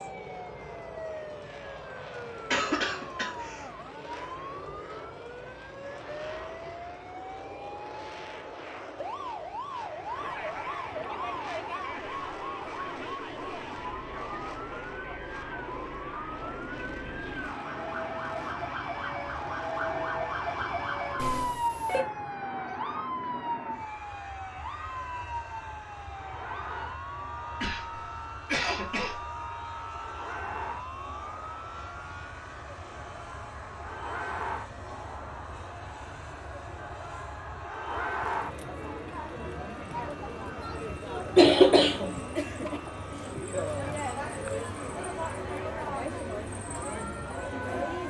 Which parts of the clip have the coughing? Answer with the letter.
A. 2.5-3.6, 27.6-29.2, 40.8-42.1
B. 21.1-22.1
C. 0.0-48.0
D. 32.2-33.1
A.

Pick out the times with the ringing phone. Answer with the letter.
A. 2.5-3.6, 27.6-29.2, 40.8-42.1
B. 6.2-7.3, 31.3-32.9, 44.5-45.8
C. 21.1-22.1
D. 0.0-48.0
C.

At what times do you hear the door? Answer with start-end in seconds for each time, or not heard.
not heard.